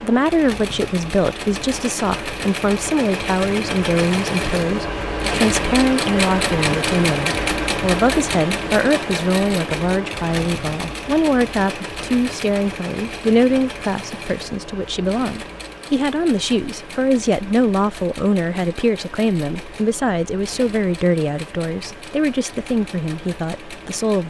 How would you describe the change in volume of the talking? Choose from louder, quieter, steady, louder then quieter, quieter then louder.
steady.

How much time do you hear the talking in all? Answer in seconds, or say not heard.
24 s.